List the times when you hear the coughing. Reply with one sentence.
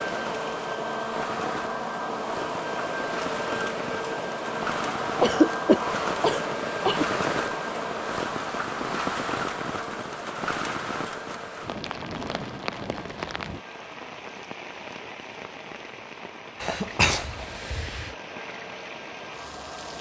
You can hear the coughing from 5.2 to 7.0 s and from 16.6 to 18.1 s.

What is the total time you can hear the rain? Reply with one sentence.
The rain can be heard for 20 seconds in total.